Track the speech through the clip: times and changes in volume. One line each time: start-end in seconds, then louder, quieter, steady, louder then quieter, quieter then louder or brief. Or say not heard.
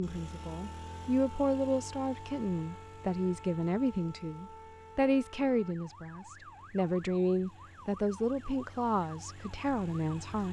0.0-10.4 steady.